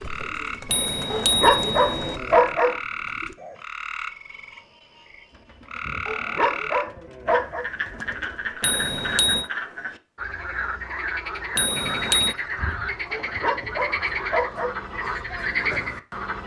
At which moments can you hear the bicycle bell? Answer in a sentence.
The bicycle bell can be heard from 0.7 to 2.2 s, from 8.6 to 9.5 s and from 11.6 to 12.3 s.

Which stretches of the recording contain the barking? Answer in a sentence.
You can hear the barking from 1.1 to 2.8 s, from 6.0 to 7.7 s and from 13.1 to 14.8 s.